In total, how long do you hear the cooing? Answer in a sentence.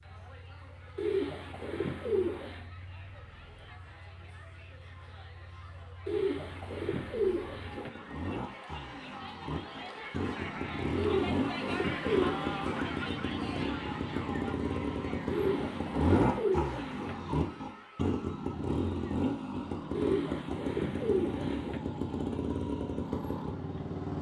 You can hear the cooing for 9 seconds altogether.